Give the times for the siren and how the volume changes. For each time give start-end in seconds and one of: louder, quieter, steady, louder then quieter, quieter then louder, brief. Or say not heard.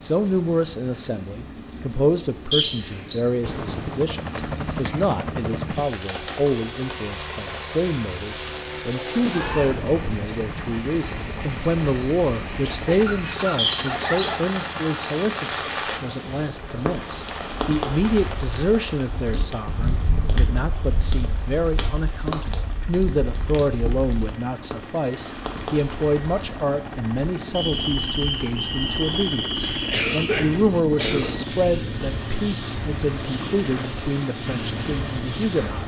not heard.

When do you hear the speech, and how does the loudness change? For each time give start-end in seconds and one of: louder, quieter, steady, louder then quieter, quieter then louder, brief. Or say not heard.
0.0-35.8 steady.